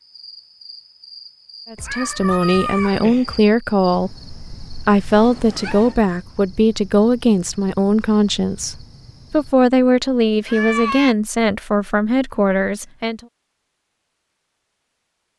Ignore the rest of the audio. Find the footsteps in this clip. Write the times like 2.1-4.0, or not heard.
not heard.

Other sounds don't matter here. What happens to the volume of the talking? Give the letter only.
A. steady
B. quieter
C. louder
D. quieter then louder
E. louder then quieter
A.